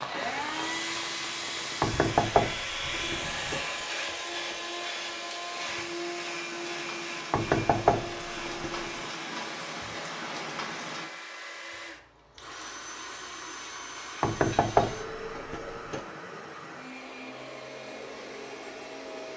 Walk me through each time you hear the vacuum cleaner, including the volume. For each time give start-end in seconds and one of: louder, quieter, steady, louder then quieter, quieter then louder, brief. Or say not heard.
0.0-19.3 quieter.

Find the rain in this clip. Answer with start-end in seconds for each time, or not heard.
0.0-11.1.